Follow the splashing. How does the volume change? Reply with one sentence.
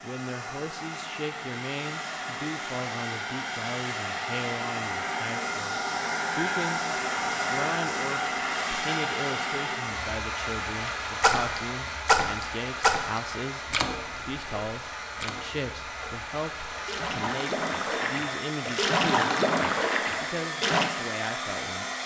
The volume of the splashing goes down, then up.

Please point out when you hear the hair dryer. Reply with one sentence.
The hair dryer can be heard from 0.0 to 22.0 s.